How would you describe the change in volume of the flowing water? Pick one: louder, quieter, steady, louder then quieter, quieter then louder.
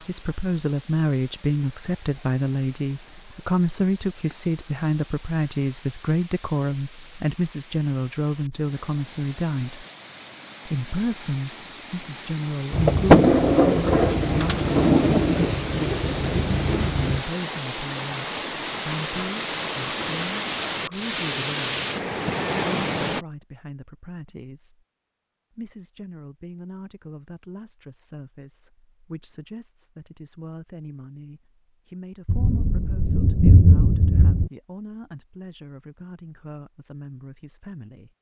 louder.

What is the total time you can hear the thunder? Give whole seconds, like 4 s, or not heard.
7 s.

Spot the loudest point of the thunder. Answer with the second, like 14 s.
13 s.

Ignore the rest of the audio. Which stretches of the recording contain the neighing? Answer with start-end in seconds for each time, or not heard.
not heard.